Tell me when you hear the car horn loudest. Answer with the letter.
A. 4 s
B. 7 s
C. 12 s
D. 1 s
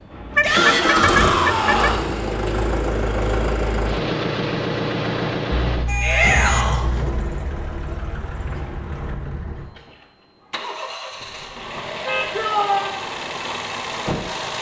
D.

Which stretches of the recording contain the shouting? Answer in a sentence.
You can hear the shouting from 0.4 to 2.0 s, from 6.0 to 6.8 s and from 12.3 to 12.9 s.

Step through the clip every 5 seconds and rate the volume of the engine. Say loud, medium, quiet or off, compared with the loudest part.
loud, medium, medium.